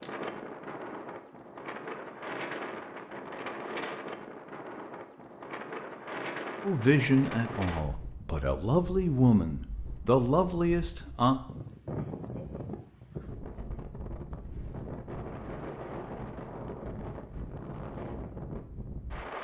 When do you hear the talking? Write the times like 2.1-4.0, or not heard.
6.6-11.4.